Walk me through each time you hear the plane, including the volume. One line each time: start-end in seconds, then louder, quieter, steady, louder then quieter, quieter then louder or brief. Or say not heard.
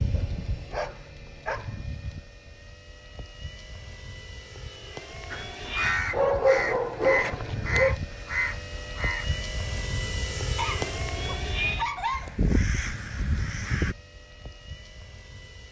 0.0-15.6 louder then quieter.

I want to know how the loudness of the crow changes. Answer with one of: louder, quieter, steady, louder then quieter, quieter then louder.
quieter then louder.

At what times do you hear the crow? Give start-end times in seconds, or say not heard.
5.3-13.9.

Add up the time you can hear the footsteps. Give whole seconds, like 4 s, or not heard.
not heard.